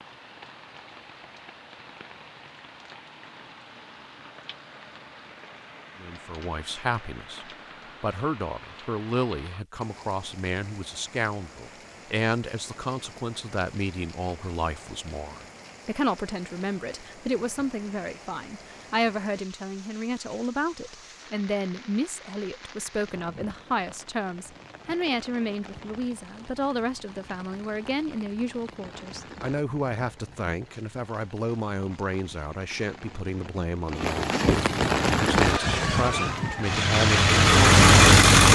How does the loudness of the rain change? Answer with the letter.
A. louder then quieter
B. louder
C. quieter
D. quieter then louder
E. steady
B.